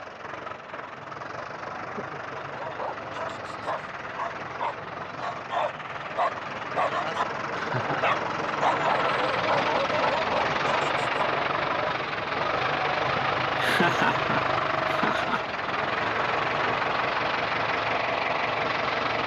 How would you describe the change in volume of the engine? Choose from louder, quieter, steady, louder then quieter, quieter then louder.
louder.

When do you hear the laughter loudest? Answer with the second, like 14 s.
14 s.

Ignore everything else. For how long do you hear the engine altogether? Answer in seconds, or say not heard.
19 s.